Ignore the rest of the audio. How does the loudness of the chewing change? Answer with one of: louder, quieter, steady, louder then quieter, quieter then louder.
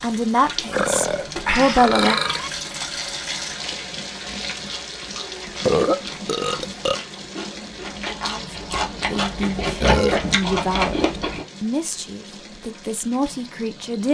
louder.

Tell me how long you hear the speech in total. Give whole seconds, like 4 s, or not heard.
8 s.